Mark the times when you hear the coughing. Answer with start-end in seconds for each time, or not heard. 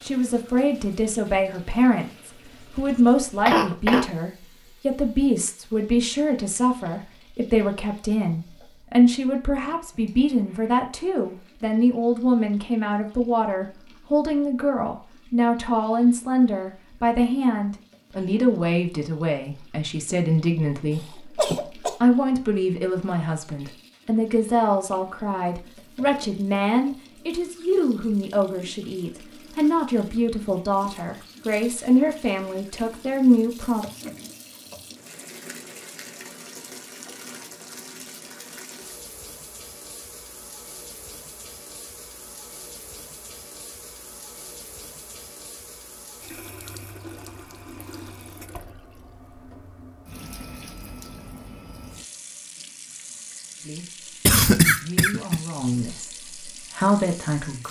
2.5-4.0, 20.9-22.0, 54.2-55.4.